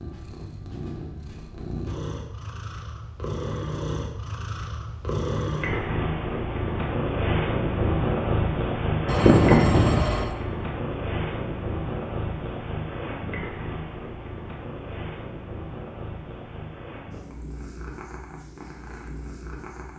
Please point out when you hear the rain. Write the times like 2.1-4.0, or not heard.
not heard.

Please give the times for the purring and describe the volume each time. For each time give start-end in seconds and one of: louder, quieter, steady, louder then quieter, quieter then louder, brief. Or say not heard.
0.0-19.9 louder then quieter.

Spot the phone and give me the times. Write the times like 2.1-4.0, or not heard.
9.1-10.3.